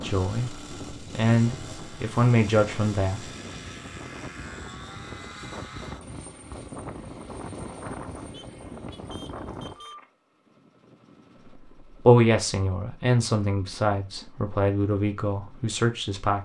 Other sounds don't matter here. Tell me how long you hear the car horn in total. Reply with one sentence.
The car horn can be heard for 2 seconds in total.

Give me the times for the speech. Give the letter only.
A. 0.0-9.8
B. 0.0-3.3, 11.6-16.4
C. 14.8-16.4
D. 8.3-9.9
B.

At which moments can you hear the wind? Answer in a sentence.
The wind can be heard from 0.0 to 9.8 s.